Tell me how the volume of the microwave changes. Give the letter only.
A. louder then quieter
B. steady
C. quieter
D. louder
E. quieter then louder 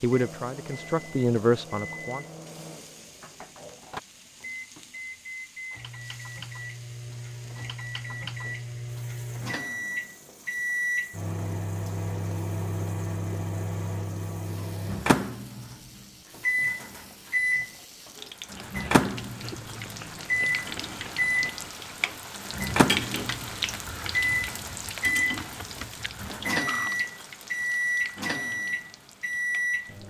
D.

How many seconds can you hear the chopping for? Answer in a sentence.
The chopping can't be heard in this clip.